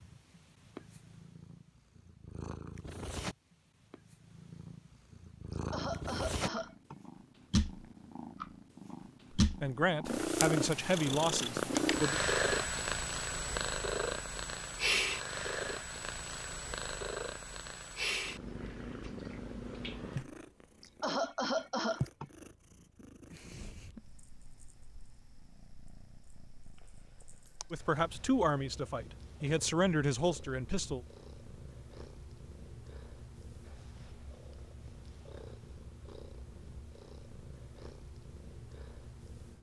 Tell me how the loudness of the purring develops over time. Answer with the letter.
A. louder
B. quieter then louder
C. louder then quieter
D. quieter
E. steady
C.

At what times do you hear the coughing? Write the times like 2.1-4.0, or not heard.
5.5-7.0, 20.8-22.3.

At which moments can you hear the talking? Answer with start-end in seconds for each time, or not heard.
9.4-12.2, 27.7-31.0.